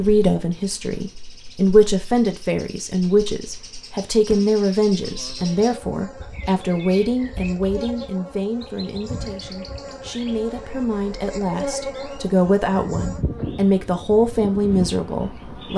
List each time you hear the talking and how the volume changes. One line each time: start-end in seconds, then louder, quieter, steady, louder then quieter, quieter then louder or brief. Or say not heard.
0.0-15.7 quieter then louder.